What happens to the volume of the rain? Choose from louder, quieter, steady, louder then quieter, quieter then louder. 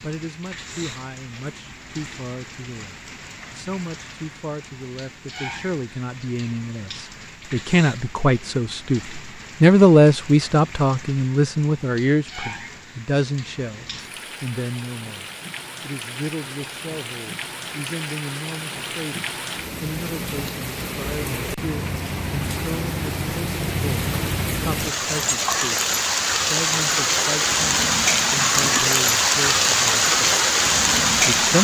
louder.